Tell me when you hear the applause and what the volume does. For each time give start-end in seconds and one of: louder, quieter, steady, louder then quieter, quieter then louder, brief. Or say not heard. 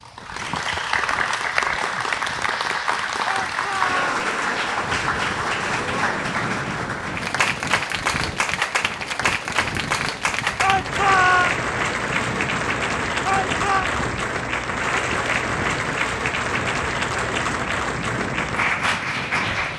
0.0-19.7 steady.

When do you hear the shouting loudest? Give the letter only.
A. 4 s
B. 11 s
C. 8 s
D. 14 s
B.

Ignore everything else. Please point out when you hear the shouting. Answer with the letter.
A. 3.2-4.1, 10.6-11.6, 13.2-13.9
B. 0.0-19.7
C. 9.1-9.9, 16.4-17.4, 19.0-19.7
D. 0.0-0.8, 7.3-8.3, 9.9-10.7
A.